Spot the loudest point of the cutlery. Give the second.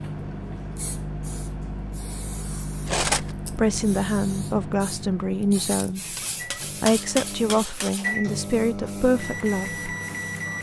3 s.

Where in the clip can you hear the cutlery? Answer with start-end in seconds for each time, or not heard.
2.9-3.4, 6.2-8.1.